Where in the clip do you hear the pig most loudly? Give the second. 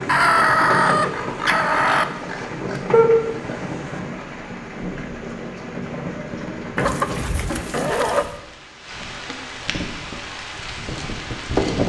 3 s.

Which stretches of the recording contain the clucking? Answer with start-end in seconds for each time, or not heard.
0.1-2.0, 6.8-8.3.